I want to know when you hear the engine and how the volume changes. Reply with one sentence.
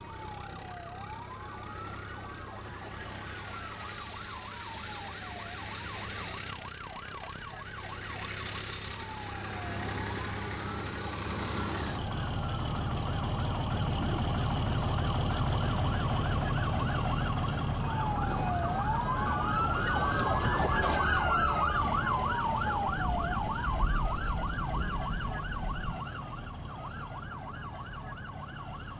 The engine can be heard from 0.0 to 28.9 s, getting louder then quieter.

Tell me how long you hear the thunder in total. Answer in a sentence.
You can hear the thunder for 3 seconds altogether.